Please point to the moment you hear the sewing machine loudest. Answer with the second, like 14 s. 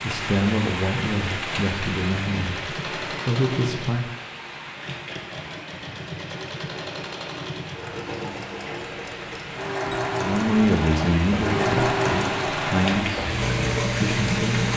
12 s.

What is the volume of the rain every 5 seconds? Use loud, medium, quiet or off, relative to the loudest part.
loud, medium, loud.